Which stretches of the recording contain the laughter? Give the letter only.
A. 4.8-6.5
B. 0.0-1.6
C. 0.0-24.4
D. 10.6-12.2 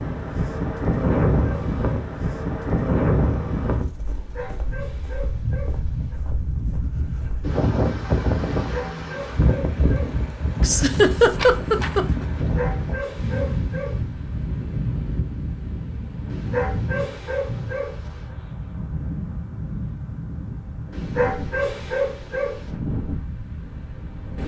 D.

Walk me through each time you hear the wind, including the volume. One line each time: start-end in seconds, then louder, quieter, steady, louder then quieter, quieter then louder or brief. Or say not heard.
0.0-24.4 quieter.